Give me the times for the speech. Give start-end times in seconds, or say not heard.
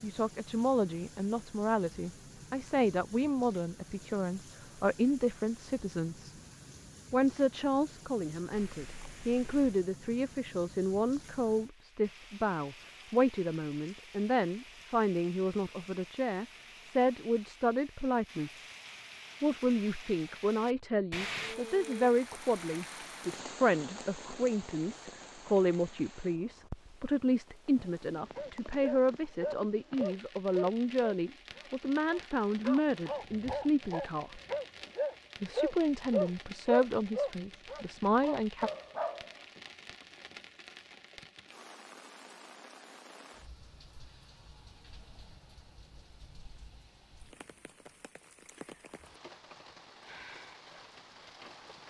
0.0-6.3, 7.1-18.6, 19.4-34.4, 35.4-38.7.